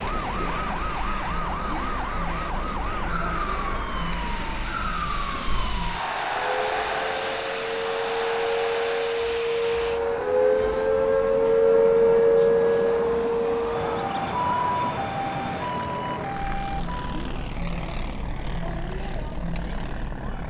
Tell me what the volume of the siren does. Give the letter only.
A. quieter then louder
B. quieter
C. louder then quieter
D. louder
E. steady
C.